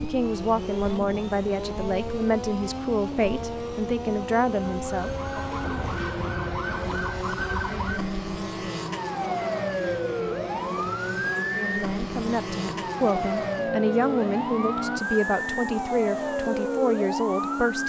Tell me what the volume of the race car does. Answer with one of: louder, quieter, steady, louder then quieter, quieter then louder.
steady.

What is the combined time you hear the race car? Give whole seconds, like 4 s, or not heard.
18 s.